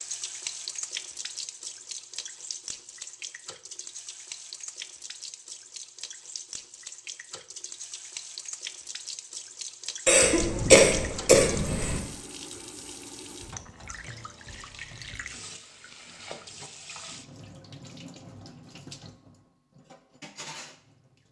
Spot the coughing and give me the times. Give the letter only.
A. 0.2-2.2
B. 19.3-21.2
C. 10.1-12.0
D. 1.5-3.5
C.